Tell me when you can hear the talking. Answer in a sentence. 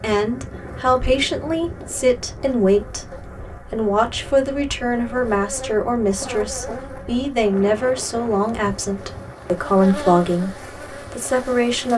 The talking can be heard from 0.0 to 11.9 s.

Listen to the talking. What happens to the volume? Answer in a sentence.
The volume of the talking stays about the same.